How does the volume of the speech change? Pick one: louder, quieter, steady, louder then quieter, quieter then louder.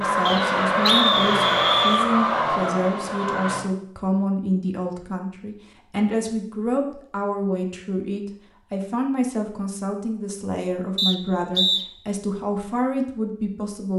steady.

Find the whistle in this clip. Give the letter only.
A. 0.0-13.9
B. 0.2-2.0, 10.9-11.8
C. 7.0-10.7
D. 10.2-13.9
B.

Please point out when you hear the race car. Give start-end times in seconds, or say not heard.
0.0-3.6.